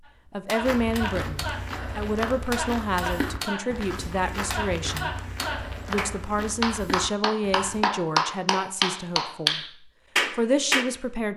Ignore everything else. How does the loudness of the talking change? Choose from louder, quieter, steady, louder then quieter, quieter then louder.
steady.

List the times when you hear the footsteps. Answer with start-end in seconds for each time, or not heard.
0.6-7.8.